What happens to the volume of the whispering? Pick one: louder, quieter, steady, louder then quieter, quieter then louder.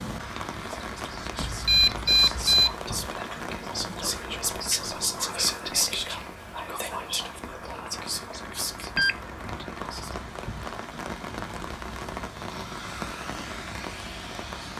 louder then quieter.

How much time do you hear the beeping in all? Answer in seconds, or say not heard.
2 s.